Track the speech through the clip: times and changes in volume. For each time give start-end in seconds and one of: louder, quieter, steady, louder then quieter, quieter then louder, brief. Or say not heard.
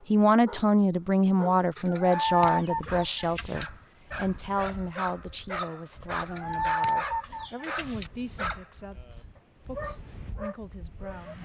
0.1-11.3 quieter.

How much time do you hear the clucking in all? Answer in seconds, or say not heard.
4 s.